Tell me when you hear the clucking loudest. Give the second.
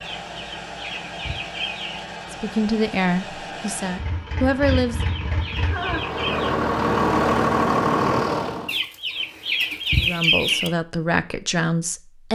10 s.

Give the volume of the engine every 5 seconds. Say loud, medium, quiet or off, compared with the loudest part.
quiet, loud, off.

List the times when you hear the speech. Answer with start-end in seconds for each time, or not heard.
2.3-5.0, 9.9-12.3.